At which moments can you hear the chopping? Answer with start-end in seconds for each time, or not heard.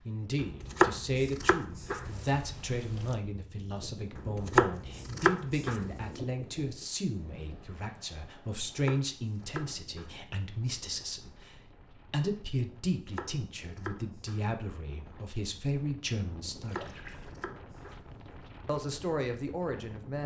0.4-2.2, 4.2-6.0, 8.7-10.2, 12.9-14.6, 16.6-18.1.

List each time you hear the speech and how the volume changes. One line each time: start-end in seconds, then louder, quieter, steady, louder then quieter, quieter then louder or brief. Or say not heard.
0.1-17.1 steady
18.6-20.2 brief.